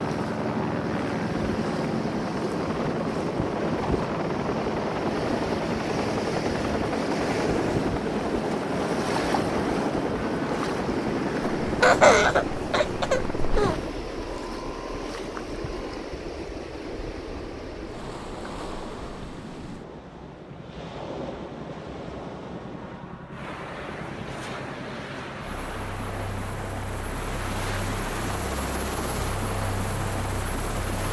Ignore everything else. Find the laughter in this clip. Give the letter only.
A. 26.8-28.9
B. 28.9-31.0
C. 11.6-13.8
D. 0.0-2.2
C.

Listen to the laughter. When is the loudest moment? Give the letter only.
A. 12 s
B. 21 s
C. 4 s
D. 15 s
A.